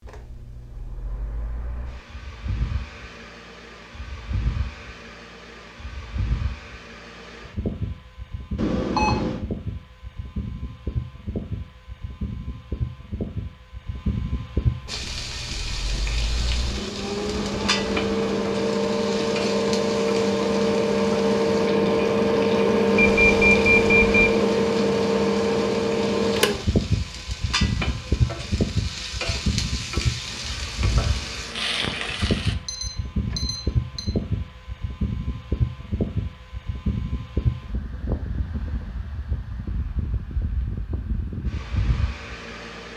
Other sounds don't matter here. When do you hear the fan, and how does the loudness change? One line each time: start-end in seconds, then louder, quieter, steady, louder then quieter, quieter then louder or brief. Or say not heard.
0.0-42.9 louder then quieter.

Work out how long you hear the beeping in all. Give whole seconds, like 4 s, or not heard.
3 s.